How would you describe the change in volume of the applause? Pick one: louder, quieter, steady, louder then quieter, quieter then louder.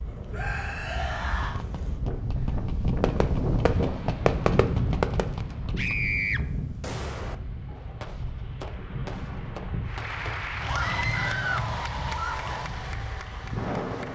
quieter.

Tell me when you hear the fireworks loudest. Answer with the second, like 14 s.
4 s.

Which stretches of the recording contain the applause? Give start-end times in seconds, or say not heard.
9.8-14.0.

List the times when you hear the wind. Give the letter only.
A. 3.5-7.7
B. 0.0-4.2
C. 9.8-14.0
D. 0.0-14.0
D.